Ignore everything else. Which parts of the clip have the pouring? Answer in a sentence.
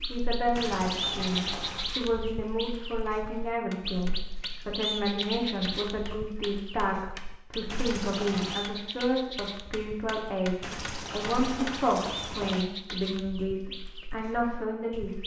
The pouring can be heard from 0.6 to 2.0 s, from 7.7 to 8.7 s and from 10.6 to 12.7 s.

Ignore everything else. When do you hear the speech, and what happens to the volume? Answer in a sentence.
You can hear the speech from 0.1 to 15.2 s, at a steady volume.